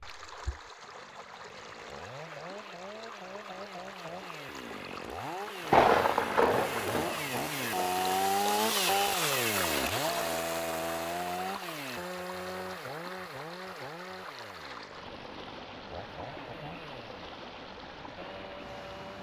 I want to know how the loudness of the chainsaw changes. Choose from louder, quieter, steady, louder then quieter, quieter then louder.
louder then quieter.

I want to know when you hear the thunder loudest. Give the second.
6 s.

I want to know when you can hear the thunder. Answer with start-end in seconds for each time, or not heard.
5.7-8.2.